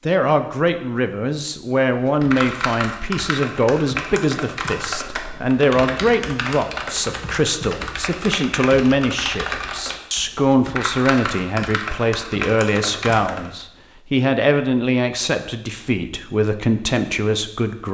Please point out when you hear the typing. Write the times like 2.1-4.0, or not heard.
1.9-13.7.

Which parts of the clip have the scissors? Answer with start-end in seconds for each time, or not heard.
not heard.